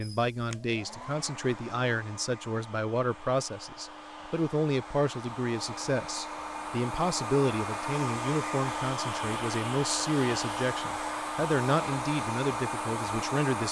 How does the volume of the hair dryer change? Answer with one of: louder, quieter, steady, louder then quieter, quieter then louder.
louder.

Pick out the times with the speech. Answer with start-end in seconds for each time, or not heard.
0.0-13.6.